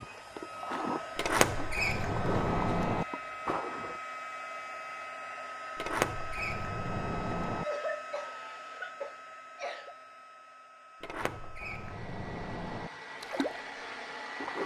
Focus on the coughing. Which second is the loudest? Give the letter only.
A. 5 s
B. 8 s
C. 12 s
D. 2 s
B.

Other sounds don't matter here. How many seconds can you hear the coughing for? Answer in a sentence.
The coughing can be heard for 2 seconds in total.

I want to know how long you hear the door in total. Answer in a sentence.
The door can be heard for 6 seconds in total.